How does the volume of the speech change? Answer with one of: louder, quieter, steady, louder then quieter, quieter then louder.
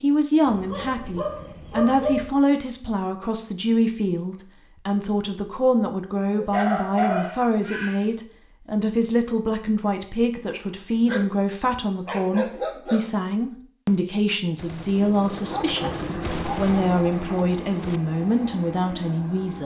steady.